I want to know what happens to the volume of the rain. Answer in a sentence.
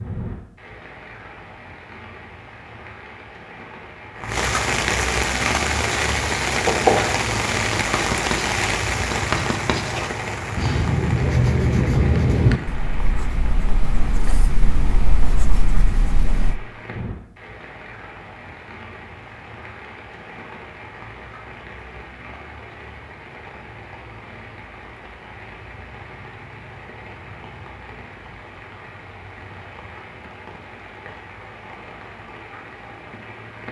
The loudness of the rain goes down.